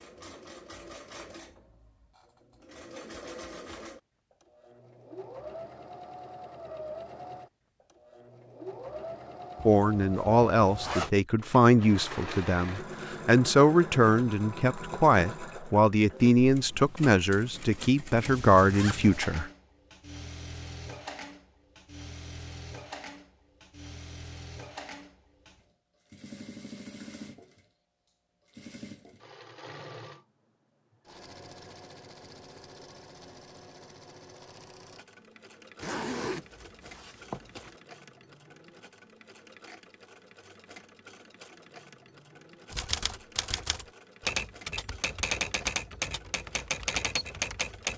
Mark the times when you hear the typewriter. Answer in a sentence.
You can hear the typewriter from 42.7 to 47.9 s.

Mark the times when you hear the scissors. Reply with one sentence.
The scissors can't be heard in this clip.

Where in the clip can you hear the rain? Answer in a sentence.
You can't hear the rain here.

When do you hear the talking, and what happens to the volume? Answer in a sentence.
The talking can be heard from 9.7 to 19.5 s, at a steady volume.